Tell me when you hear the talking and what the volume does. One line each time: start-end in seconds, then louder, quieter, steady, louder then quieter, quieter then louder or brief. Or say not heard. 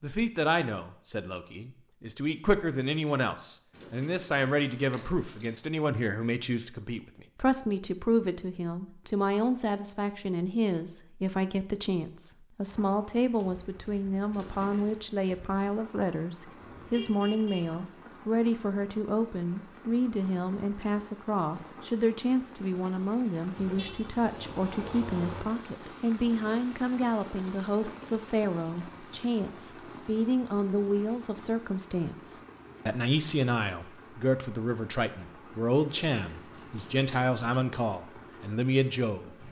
0.0-39.4 steady.